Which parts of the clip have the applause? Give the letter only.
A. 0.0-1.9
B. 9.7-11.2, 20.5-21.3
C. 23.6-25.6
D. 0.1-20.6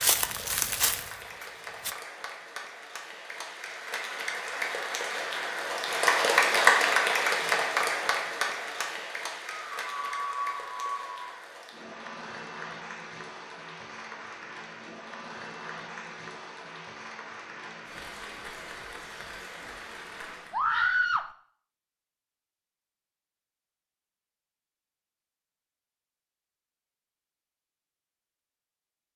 D.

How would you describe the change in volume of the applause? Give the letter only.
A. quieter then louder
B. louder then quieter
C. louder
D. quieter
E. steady
B.